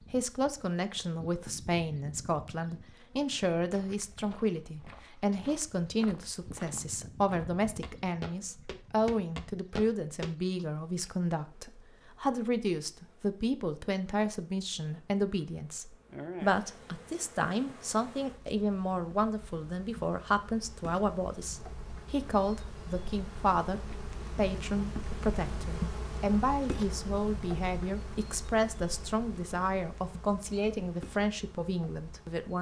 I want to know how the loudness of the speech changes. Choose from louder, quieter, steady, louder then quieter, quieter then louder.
steady.